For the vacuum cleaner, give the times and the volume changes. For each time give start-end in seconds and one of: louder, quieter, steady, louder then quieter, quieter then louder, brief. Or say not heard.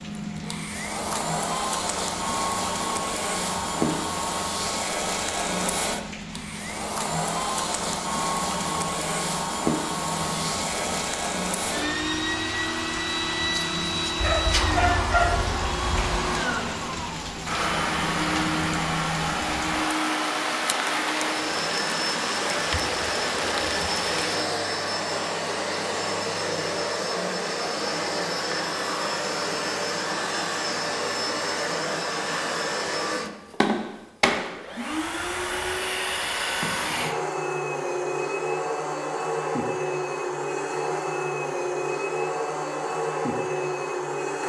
0.0-44.4 steady.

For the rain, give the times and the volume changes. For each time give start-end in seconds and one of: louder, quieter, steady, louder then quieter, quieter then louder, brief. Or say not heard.
0.0-24.5 louder.